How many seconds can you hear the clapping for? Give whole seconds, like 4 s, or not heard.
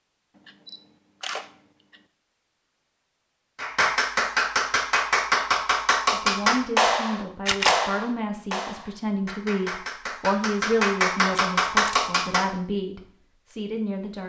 9 s.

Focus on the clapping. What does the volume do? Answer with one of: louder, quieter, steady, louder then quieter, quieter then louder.
quieter then louder.